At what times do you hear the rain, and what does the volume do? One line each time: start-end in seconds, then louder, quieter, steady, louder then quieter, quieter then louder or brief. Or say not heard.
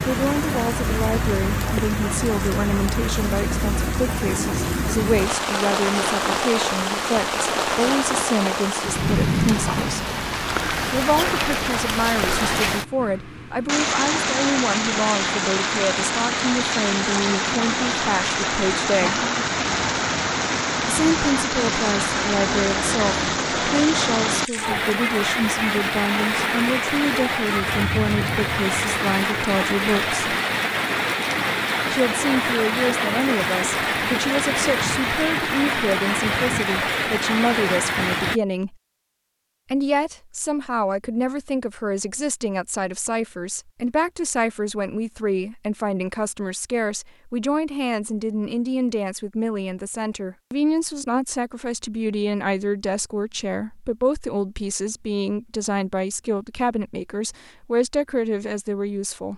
0.0-38.4 steady.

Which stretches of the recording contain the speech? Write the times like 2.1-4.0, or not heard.
0.0-10.1, 10.9-19.2, 20.9-30.4, 31.9-38.8, 39.7-59.3.